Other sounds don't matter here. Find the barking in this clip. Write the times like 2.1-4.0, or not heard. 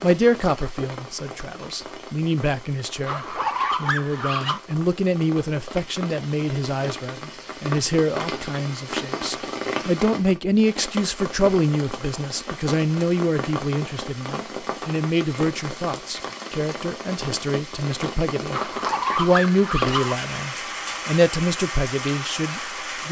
3.0-4.6, 18.5-20.2.